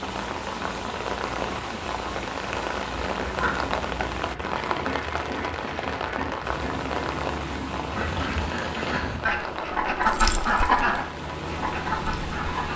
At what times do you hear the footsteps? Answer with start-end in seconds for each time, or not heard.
not heard.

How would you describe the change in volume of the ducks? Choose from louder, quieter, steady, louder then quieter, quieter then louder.
louder.